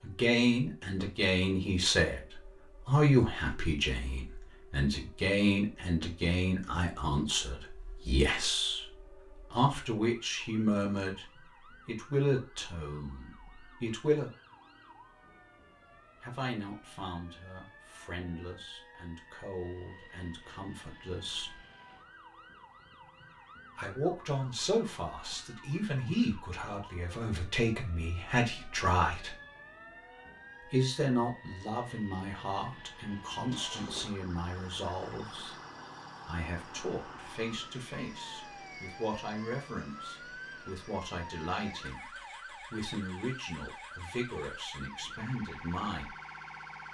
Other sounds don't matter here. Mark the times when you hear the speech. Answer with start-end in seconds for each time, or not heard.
0.0-11.2, 11.8-14.3, 16.2-21.6, 23.8-29.3, 30.6-35.5, 36.2-46.1.